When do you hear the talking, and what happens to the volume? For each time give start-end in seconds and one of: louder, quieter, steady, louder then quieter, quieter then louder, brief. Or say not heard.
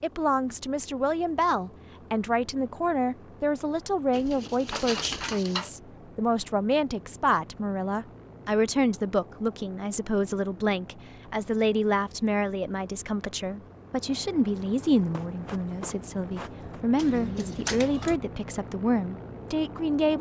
0.0-20.1 steady.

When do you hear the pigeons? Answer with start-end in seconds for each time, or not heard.
4.1-5.7, 16.9-18.2.